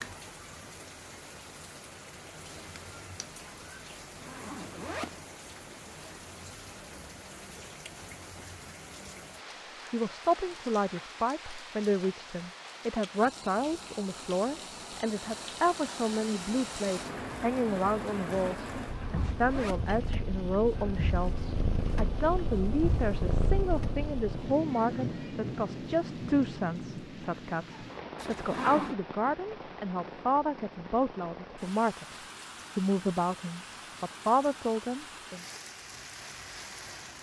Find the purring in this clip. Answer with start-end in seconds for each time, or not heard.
18.6-24.6.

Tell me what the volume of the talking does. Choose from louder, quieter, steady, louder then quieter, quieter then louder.
steady.